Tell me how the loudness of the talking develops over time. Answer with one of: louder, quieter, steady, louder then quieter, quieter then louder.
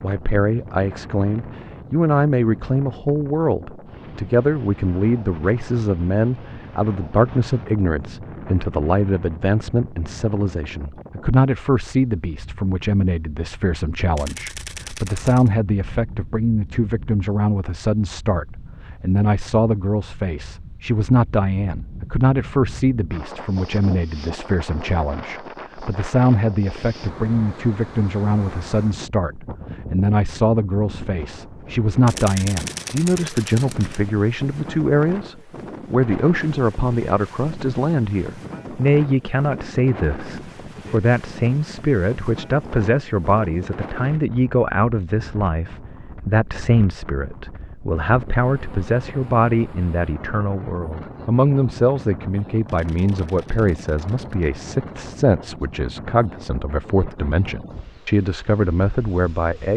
steady.